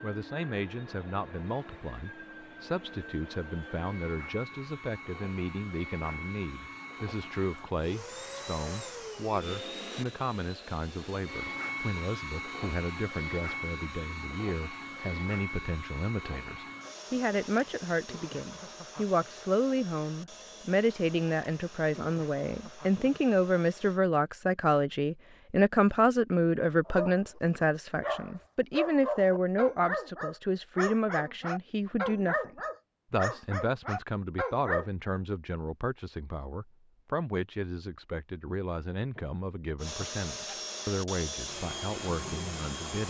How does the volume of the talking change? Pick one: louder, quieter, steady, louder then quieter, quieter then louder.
louder then quieter.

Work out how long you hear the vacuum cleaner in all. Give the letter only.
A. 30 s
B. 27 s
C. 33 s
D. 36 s
B.